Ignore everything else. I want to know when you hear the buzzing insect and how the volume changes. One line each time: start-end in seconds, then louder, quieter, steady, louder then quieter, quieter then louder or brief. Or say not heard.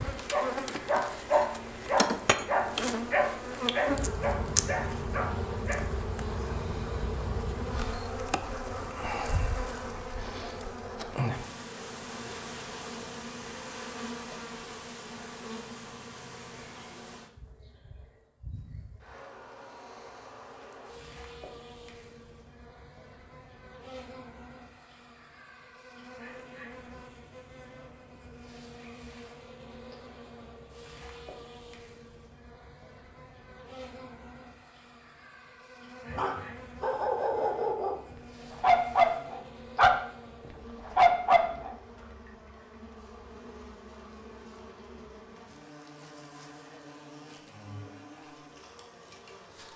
0.0-49.7 quieter.